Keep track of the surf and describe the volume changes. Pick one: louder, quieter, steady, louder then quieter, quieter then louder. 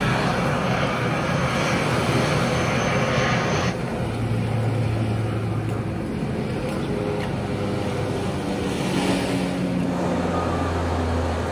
steady.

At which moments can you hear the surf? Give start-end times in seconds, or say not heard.
0.0-11.4.